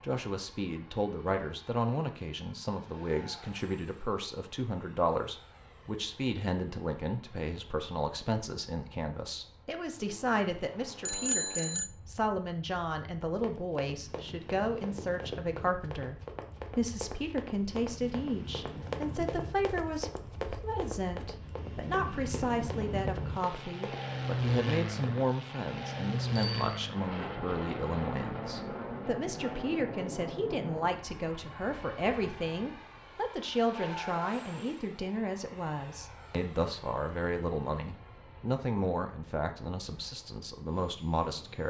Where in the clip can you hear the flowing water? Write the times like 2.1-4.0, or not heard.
not heard.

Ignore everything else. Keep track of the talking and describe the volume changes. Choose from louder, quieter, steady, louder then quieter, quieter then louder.
steady.